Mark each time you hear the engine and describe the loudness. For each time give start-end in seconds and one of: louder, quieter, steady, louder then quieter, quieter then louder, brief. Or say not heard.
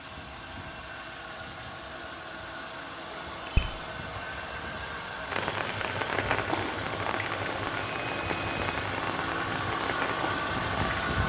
0.0-11.2 louder.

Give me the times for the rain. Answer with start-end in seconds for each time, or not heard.
5.2-11.2.